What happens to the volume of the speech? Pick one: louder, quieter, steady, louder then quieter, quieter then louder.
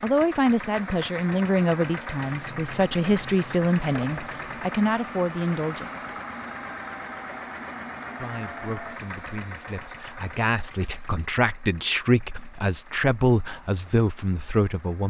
quieter then louder.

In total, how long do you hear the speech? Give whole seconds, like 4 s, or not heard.
13 s.